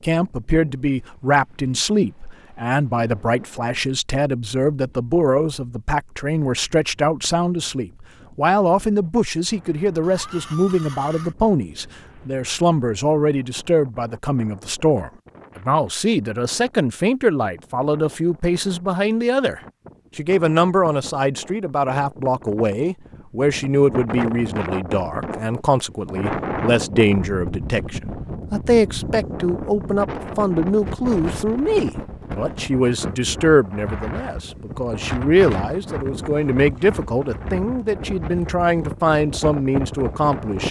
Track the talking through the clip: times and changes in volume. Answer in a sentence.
The talking can be heard from 0.0 to 40.6 s, at a steady volume.